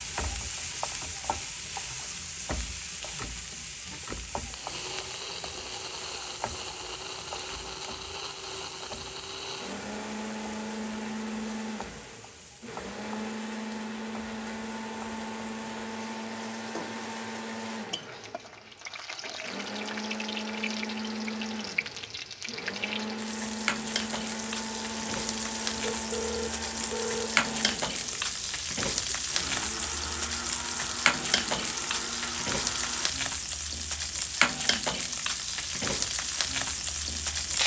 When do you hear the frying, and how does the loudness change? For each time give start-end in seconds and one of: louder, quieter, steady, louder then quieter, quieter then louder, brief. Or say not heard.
0.0-37.6 quieter then louder.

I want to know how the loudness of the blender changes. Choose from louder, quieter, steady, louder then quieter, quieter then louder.
steady.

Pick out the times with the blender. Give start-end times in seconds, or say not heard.
3.9-33.1.